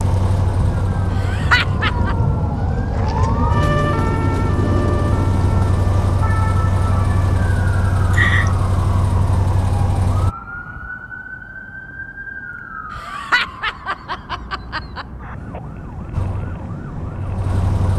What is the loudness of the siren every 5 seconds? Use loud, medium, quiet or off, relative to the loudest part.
loud, medium, medium, medium.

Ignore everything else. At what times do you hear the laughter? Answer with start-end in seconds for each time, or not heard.
1.1-2.1, 8.1-8.5, 12.9-15.1.